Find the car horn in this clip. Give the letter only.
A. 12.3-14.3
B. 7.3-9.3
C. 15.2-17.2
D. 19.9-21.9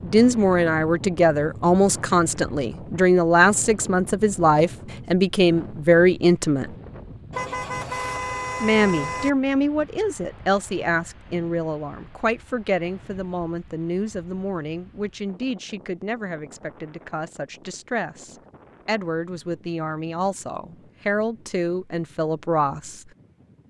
B.